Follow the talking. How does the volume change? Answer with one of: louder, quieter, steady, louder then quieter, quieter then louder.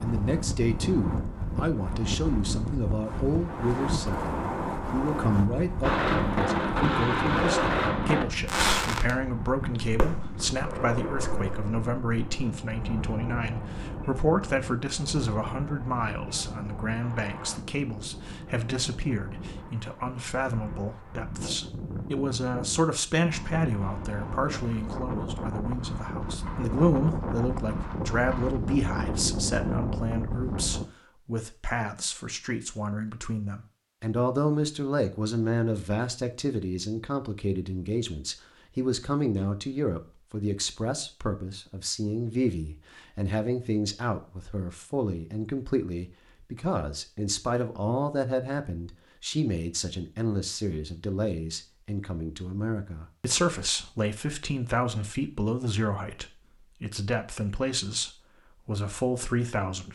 steady.